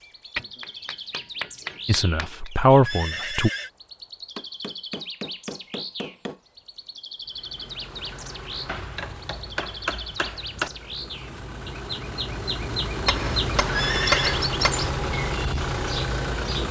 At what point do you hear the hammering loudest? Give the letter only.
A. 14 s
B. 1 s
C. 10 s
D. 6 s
A.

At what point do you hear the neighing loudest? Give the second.
14 s.